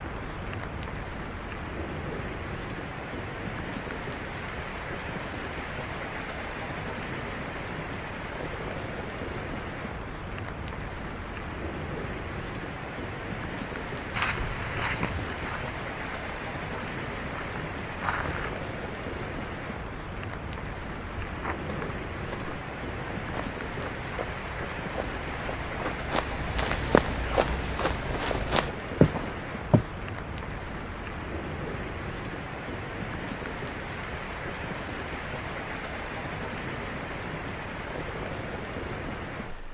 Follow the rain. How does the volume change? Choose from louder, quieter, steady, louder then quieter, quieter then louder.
steady.